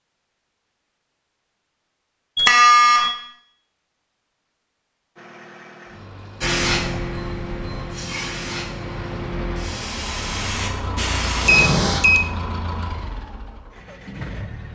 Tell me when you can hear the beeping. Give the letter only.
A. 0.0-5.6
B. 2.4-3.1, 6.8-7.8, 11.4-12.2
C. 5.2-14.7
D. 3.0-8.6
B.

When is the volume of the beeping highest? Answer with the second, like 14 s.
3 s.